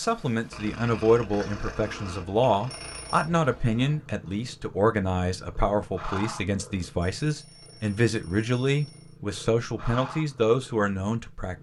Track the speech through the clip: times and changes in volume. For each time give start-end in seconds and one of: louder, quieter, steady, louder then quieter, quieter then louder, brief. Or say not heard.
0.0-11.5 steady.